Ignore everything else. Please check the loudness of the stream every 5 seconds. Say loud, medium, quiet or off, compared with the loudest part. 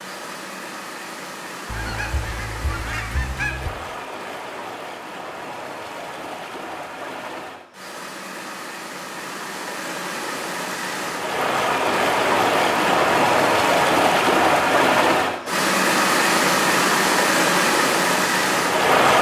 quiet, quiet, loud, loud.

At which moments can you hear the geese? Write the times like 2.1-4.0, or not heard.
1.6-3.7.